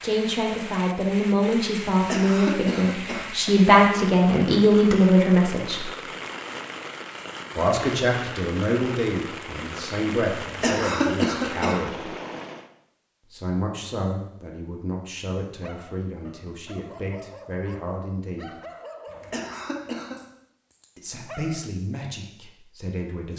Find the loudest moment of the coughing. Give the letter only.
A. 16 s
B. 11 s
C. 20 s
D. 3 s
B.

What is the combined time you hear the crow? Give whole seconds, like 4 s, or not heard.
not heard.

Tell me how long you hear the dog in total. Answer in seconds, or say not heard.
6 s.